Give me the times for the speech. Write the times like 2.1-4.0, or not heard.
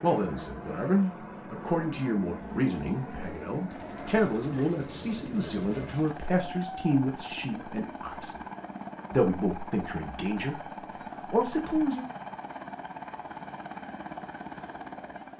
0.0-8.4, 9.1-10.6, 11.2-12.1.